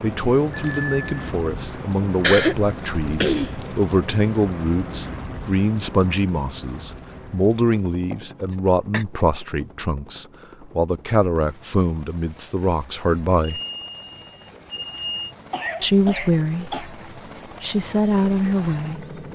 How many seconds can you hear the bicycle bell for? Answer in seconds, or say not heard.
3 s.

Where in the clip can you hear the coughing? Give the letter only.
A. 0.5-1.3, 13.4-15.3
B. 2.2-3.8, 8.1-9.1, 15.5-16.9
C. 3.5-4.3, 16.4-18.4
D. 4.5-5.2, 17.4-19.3
B.